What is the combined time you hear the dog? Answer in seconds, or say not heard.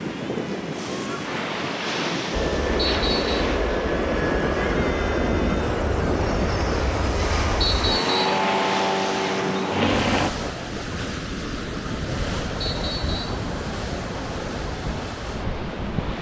not heard.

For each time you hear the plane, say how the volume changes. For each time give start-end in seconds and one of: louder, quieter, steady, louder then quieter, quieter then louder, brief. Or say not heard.
2.3-10.3 steady.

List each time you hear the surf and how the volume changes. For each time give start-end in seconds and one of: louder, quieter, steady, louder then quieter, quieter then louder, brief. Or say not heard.
0.0-16.1 steady.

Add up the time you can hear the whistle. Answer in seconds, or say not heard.
2 s.